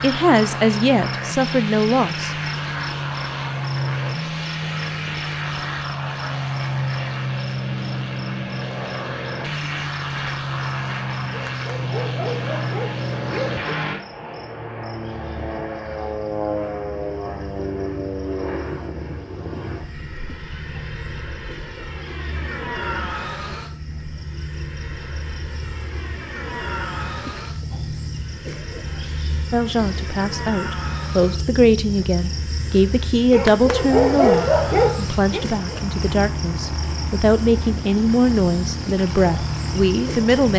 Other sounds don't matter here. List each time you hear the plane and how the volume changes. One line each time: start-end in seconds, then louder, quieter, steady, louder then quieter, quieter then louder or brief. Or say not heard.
0.0-40.5 quieter.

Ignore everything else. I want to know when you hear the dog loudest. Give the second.
34 s.